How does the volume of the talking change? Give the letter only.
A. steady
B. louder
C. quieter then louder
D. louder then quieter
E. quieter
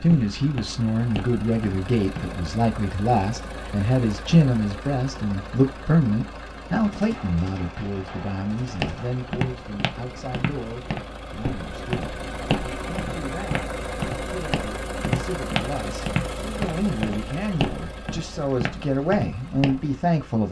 C.